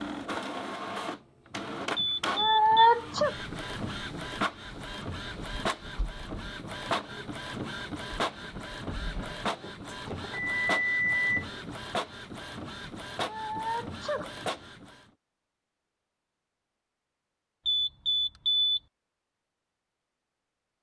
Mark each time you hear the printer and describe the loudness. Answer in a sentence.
The printer can be heard from 0.0 to 15.1 s, at a steady volume.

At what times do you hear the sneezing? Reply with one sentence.
The sneezing can be heard from 2.3 to 3.4 s and from 13.2 to 14.3 s.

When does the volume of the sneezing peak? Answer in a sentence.
The loudest moment of the sneezing is at 3 seconds.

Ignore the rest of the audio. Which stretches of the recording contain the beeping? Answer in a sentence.
The beeping can be heard from 1.9 to 2.9 s, from 9.8 to 11.4 s and from 17.6 to 18.8 s.